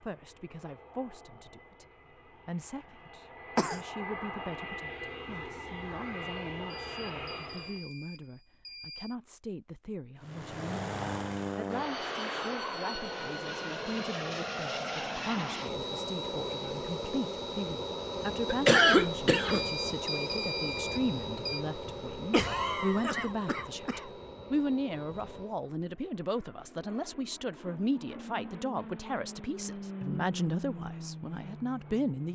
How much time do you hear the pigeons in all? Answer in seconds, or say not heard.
not heard.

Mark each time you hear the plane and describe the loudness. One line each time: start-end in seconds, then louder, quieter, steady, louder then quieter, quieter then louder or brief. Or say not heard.
0.0-7.8 louder
10.2-32.3 quieter then louder.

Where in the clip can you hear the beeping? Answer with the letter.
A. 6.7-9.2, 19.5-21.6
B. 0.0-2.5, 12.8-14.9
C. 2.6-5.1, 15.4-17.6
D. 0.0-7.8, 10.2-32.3
A.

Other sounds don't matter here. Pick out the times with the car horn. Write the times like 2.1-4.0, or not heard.
not heard.